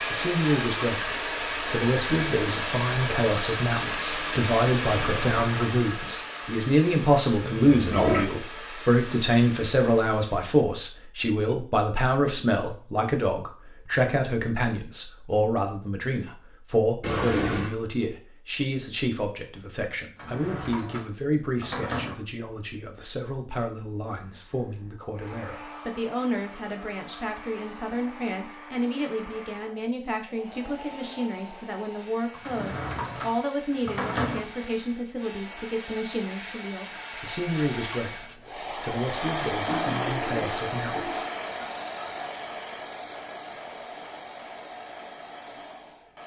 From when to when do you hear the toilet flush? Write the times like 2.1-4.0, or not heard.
7.4-8.2, 17.0-17.7, 39.6-42.3.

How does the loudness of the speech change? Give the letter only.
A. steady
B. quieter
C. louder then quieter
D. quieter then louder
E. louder
B.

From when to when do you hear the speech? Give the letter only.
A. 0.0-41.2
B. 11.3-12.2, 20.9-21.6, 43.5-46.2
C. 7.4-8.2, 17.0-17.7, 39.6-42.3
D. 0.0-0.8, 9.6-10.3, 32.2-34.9
A.